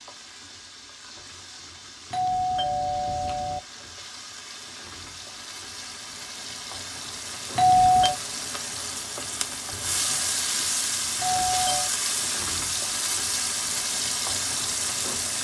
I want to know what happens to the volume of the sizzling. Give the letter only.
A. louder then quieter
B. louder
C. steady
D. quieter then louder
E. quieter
B.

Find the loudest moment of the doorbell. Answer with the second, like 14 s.
8 s.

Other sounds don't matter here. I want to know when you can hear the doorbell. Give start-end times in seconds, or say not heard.
2.1-3.6, 7.5-8.2, 11.2-11.9.